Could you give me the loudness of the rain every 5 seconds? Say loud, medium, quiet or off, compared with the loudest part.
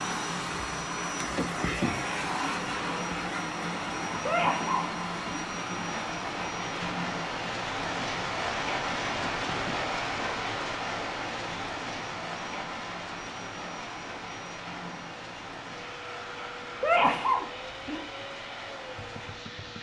medium, loud, loud, medium.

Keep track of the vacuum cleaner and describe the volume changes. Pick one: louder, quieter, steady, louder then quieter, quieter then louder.
quieter.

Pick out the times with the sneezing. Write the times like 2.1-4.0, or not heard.
4.2-5.5, 16.8-18.0.